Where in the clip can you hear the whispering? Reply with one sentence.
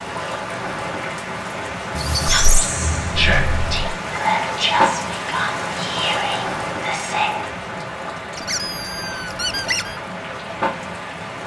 You can hear the whispering from 2.2 to 7.5 s.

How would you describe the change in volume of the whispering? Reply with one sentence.
The loudness of the whispering goes down.